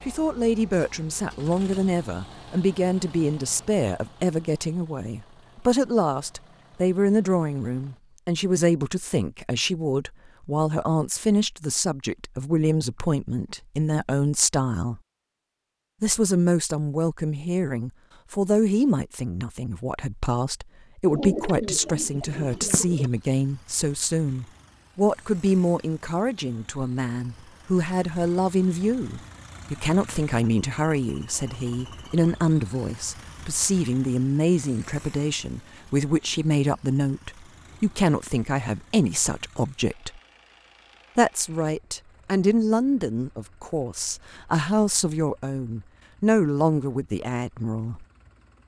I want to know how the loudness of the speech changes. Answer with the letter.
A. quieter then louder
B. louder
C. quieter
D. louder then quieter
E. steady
E.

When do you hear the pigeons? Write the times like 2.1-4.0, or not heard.
21.1-23.1.